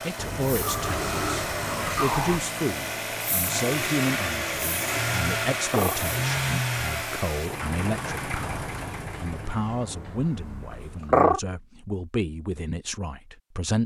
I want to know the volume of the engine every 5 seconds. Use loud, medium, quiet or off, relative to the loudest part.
loud, loud, off.